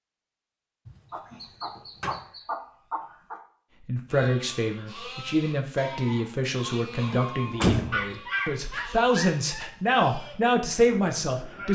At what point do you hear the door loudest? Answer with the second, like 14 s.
8 s.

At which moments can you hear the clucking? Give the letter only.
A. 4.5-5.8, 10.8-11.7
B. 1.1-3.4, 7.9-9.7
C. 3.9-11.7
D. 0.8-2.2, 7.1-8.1
B.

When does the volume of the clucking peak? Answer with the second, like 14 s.
8 s.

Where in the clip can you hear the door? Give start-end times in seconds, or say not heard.
0.8-2.2, 7.1-8.1.